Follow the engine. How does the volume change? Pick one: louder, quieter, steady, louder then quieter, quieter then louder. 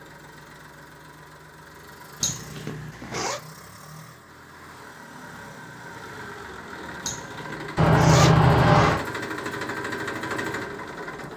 louder.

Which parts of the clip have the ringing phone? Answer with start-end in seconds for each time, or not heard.
7.8-9.0.